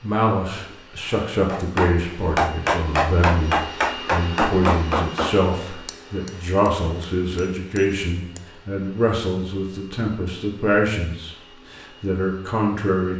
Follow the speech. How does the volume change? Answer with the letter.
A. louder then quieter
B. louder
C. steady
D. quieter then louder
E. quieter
C.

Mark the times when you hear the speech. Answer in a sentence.
The speech can be heard from 0.0 to 13.1 s.